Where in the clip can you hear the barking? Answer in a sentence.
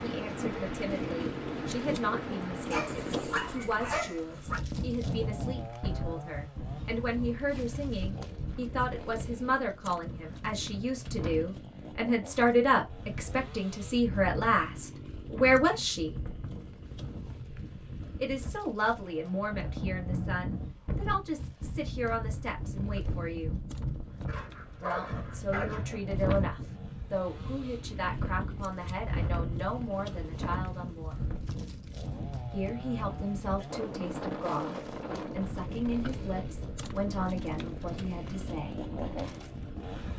The barking can be heard from 2.7 to 4.6 s and from 24.2 to 25.9 s.